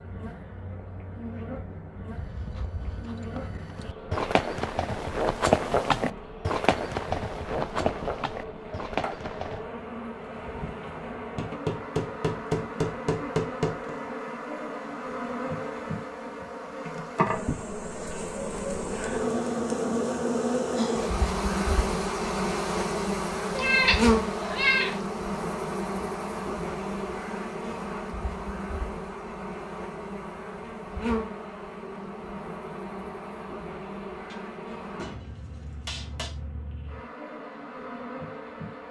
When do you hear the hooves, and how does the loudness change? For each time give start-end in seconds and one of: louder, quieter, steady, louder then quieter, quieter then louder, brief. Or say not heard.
2.1-9.7 louder then quieter.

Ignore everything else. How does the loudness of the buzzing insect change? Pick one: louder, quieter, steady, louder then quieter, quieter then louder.
louder then quieter.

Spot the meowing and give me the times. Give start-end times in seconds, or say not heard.
23.5-24.9.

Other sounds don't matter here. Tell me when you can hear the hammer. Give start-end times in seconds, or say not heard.
11.3-13.9, 34.3-36.3.